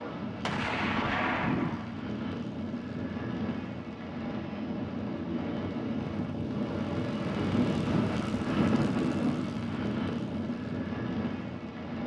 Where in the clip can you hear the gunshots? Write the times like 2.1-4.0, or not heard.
0.5-1.9.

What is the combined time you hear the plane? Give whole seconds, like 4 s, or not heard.
12 s.